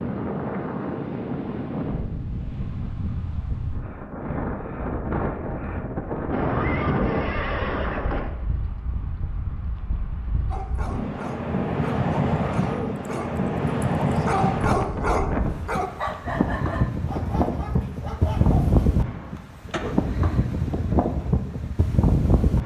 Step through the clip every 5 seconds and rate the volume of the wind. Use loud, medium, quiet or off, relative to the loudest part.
medium, medium, loud, loud, loud.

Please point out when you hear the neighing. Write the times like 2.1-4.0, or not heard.
6.3-8.3, 19.7-20.1.